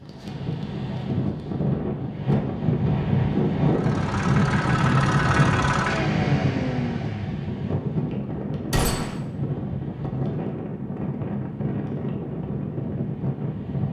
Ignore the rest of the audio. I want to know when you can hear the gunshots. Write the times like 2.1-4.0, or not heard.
8.7-9.2.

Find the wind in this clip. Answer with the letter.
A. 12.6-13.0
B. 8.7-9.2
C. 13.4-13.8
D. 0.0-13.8
D.